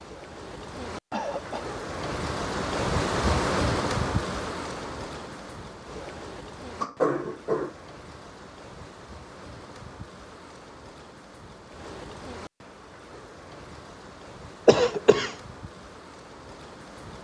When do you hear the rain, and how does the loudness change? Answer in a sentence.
The rain can be heard from 0.0 to 17.1 s, getting quieter.